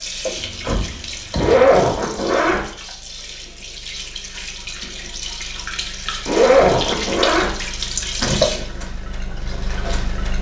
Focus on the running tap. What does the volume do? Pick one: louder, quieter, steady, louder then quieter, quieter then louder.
louder.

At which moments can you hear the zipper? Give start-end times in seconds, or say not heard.
1.4-2.6, 6.2-7.5.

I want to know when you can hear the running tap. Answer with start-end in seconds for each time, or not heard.
0.0-10.3.